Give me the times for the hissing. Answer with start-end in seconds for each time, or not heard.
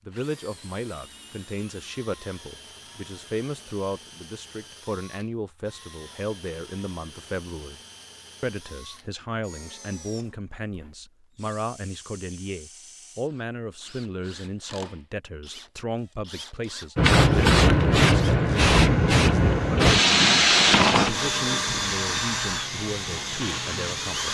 16.9-24.3.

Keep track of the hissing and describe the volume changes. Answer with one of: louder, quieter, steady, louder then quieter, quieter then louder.
quieter.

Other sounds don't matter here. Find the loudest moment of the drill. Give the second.
22 s.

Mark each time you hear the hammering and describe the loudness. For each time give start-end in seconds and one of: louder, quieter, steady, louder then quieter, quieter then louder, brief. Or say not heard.
not heard.